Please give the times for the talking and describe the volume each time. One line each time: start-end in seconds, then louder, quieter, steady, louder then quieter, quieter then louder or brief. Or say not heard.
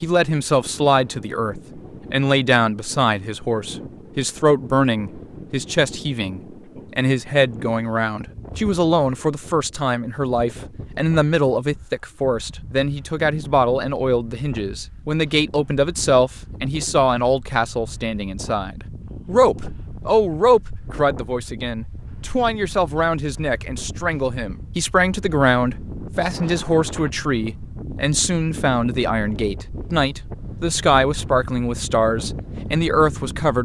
0.0-33.6 steady.